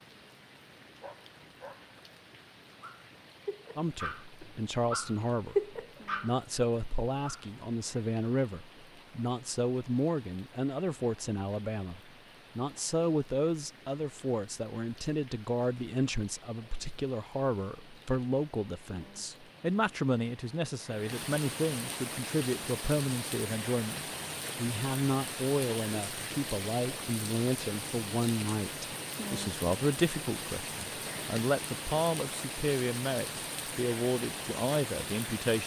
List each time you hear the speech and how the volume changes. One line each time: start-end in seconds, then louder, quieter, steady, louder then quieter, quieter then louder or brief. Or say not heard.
3.8-35.6 steady.